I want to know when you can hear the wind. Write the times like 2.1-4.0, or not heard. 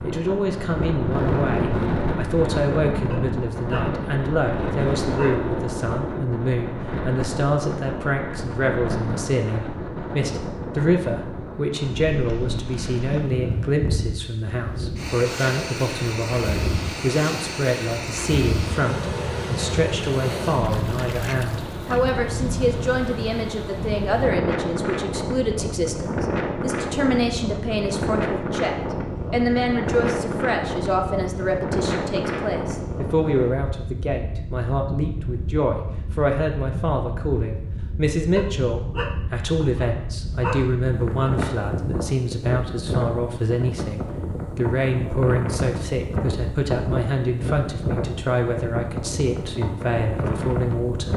0.0-51.1.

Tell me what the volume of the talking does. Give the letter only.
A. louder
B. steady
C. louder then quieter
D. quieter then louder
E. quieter
B.